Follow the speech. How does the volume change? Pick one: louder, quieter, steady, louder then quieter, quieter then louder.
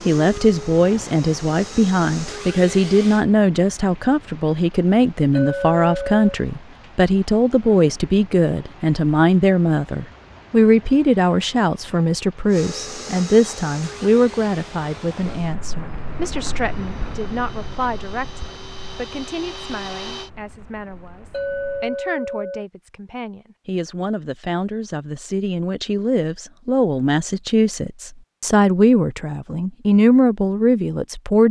quieter then louder.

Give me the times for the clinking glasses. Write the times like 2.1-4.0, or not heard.
5.3-6.2, 21.3-22.6.